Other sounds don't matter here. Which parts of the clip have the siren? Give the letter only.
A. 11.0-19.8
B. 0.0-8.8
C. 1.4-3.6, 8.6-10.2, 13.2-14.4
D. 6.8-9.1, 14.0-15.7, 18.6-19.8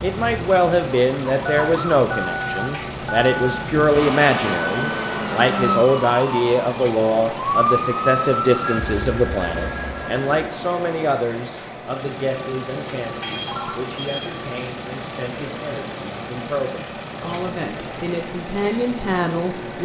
B.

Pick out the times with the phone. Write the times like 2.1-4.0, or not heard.
1.4-3.6, 8.6-10.2, 13.2-14.4.